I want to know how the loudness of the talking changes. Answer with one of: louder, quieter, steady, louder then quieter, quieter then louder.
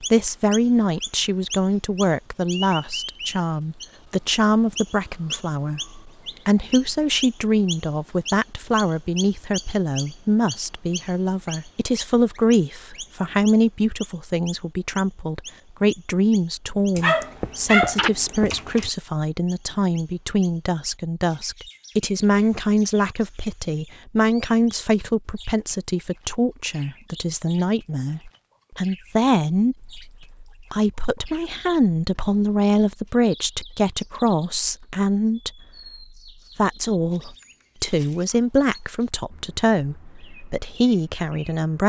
steady.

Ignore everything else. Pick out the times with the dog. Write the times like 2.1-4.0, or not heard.
16.9-18.9.